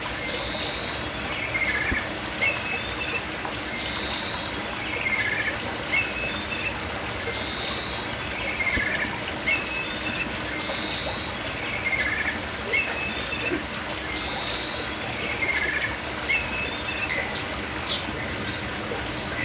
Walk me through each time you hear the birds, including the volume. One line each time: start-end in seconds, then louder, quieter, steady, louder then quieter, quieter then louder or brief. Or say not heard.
0.0-19.3 steady.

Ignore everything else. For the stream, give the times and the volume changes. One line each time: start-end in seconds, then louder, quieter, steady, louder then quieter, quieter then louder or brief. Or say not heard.
0.0-19.3 steady.